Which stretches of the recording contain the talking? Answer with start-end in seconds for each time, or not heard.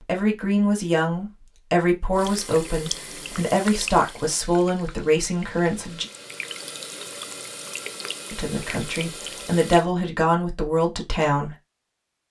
0.1-6.0, 8.3-11.6.